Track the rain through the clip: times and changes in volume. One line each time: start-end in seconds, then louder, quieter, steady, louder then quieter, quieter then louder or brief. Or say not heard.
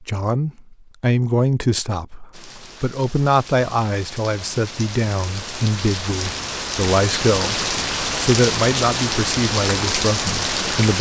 2.3-10.9 louder.